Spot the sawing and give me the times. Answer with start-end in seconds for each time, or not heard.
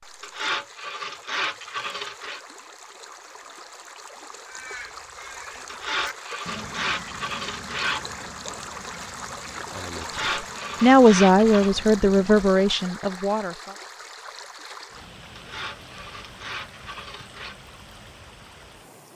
0.2-2.4, 5.7-8.1, 10.0-11.8, 15.3-17.6.